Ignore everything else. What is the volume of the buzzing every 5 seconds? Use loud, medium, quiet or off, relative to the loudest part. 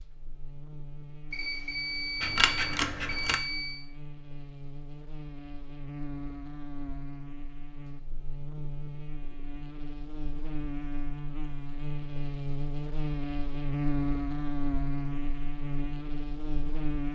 quiet, medium, loud, loud.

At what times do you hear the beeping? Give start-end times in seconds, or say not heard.
1.3-3.9.